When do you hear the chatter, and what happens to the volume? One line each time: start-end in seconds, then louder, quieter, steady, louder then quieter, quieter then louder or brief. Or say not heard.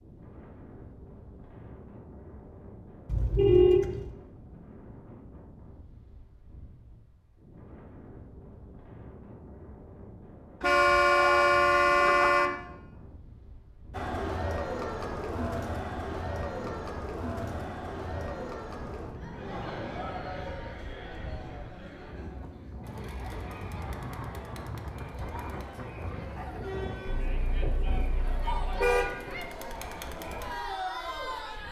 13.9-31.6 quieter then louder.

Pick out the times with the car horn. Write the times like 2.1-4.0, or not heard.
3.0-4.1, 10.6-12.5, 27.2-29.1.